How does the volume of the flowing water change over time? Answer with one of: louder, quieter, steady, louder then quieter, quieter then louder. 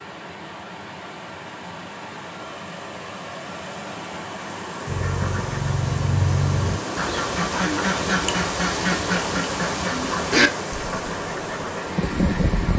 louder.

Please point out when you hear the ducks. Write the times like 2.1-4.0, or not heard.
4.8-12.7.